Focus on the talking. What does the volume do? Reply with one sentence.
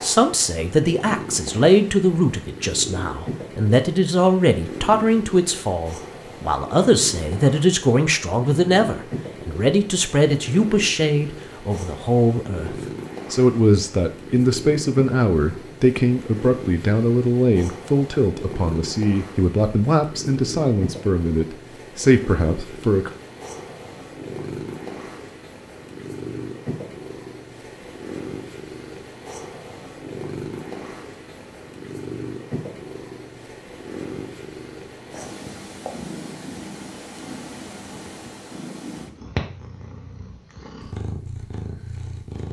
The loudness of the talking stays about the same.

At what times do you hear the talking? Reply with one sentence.
The talking can be heard from 0.0 to 23.1 s.